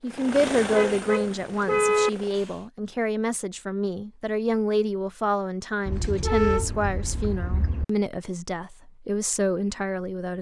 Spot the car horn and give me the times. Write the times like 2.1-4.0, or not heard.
0.7-2.1, 5.8-7.8.